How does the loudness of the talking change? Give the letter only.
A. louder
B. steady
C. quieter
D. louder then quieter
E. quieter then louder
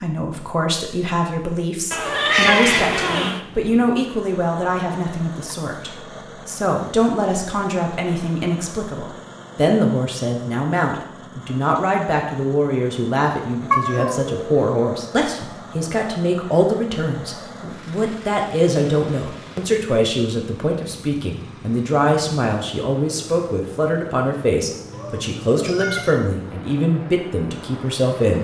B.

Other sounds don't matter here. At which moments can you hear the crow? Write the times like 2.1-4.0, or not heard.
not heard.